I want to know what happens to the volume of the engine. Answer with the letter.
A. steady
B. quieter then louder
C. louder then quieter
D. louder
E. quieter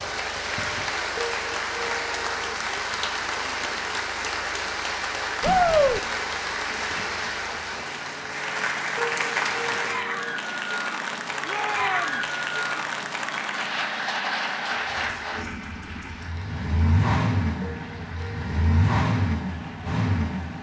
D.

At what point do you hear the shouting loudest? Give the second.
6 s.